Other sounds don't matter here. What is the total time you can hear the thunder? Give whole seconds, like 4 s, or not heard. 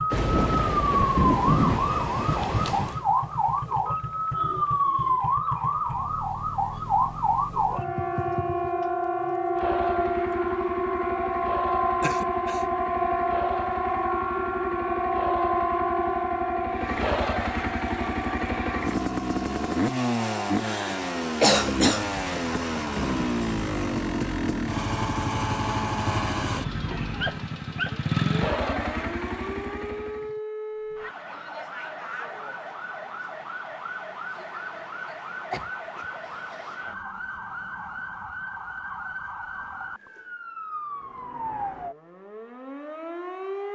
3 s.